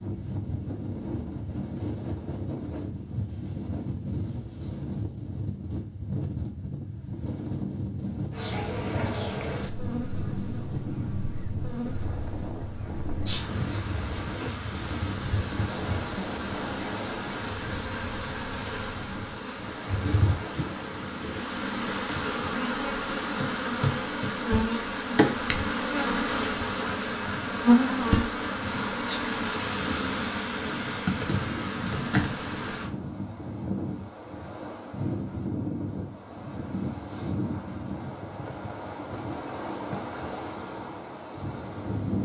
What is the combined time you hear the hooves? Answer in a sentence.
The hooves can't be heard in this clip.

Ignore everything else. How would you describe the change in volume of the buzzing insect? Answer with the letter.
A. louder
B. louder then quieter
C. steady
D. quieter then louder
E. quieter
A.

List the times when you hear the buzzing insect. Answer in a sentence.
The buzzing insect can be heard from 8.3 to 32.9 s.